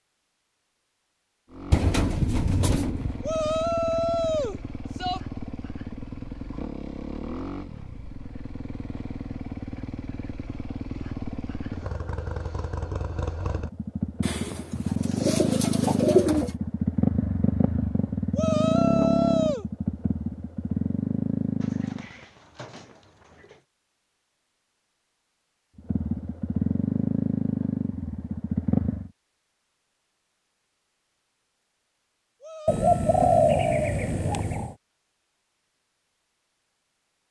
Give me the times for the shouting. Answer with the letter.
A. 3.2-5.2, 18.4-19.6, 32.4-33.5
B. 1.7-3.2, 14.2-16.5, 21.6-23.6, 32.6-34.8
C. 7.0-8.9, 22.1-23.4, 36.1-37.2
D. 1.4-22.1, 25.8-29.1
A.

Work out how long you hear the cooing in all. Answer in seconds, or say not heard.
8 s.